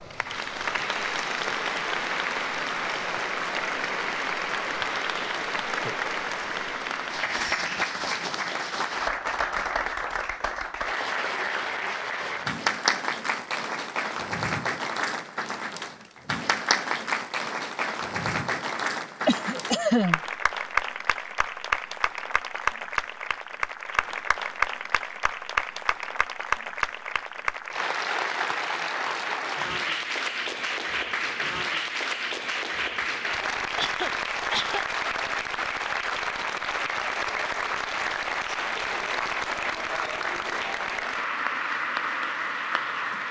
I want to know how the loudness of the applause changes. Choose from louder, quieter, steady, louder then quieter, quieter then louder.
steady.